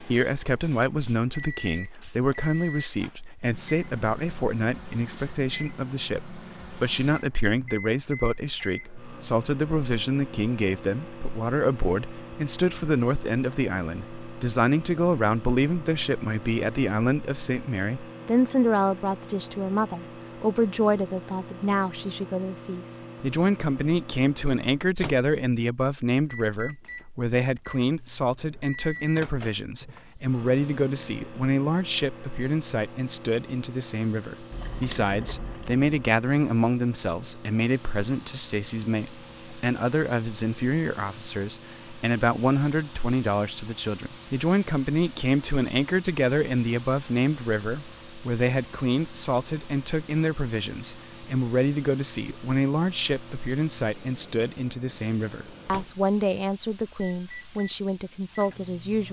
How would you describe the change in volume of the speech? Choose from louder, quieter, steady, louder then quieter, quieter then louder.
steady.